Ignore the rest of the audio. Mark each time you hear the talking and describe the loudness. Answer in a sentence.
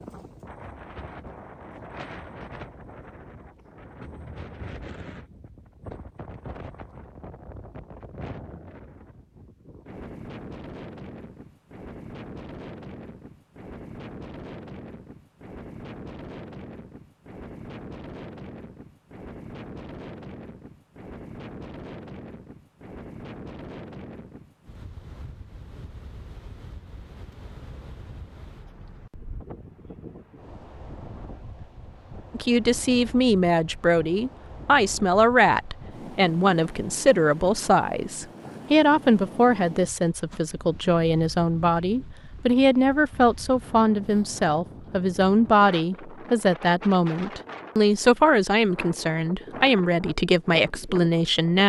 The talking can be heard from 32.3 to 51.6 s, at a steady volume.